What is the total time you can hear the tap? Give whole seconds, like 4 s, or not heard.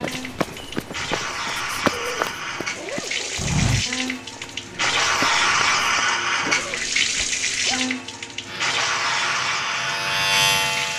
11 s.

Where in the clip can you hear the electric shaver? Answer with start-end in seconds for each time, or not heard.
8.4-10.9.